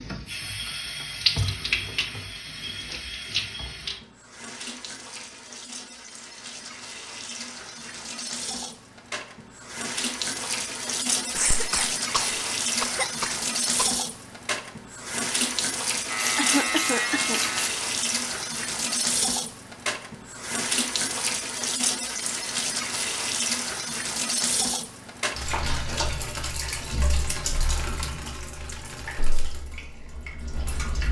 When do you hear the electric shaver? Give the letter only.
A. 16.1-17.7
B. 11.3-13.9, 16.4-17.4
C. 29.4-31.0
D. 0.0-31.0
A.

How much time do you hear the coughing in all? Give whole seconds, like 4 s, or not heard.
4 s.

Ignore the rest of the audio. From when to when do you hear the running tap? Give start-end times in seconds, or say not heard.
0.0-31.0.